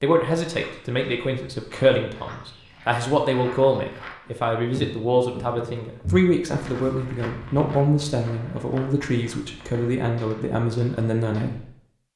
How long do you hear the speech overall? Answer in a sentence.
You can hear the speech for 12 seconds altogether.